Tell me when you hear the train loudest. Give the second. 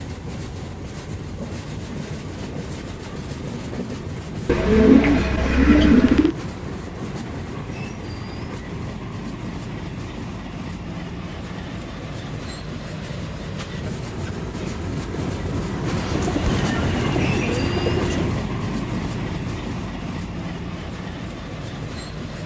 17 s.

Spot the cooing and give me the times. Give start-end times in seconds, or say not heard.
4.5-6.3, 15.9-18.4.